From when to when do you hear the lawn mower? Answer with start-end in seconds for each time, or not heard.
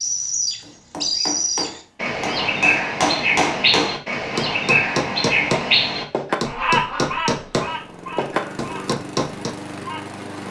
7.6-10.4.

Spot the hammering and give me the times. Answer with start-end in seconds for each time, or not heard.
0.6-9.6.